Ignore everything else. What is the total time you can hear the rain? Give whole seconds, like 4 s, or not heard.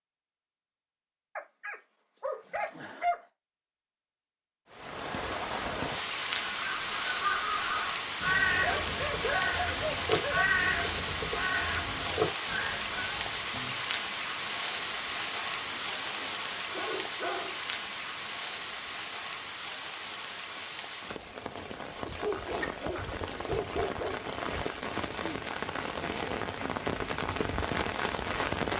24 s.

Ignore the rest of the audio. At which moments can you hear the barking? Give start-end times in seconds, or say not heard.
1.4-3.2, 8.6-10.5, 15.7-17.6, 22.1-24.1.